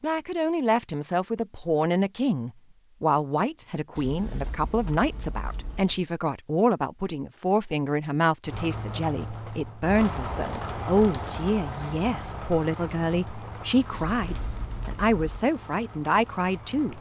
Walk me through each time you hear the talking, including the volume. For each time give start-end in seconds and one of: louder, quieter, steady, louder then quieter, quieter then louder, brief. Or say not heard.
0.0-16.9 steady.